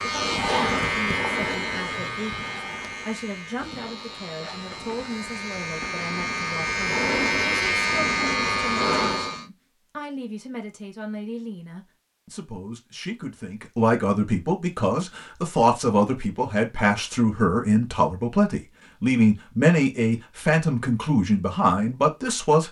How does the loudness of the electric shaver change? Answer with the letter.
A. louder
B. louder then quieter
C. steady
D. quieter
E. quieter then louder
E.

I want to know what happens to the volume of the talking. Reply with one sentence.
The volume of the talking goes up.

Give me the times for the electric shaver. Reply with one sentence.
The electric shaver can be heard from 0.0 to 9.4 s.